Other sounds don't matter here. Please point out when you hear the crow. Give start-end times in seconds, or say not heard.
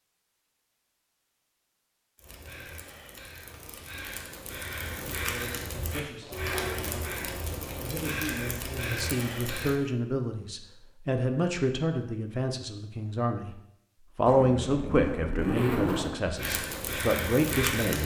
2.1-9.8, 16.4-18.0.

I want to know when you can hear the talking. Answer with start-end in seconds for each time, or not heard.
5.2-13.6, 14.2-18.0.